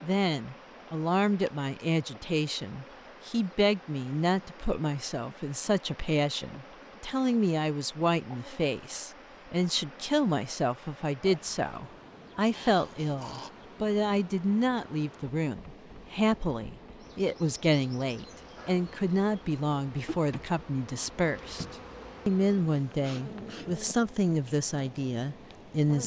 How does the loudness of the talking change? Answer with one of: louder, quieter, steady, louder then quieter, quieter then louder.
steady.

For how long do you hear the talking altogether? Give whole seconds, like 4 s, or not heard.
26 s.